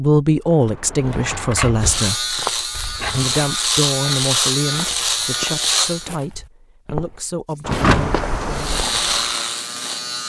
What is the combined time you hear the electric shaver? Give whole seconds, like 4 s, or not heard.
6 s.